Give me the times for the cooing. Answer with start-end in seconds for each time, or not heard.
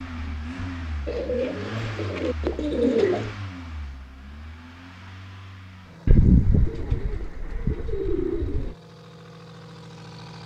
1.1-3.3, 6.0-8.8.